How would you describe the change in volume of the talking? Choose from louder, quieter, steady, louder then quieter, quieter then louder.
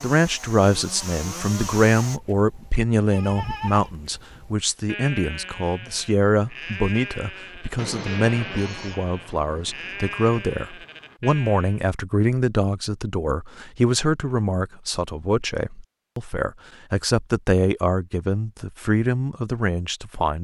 steady.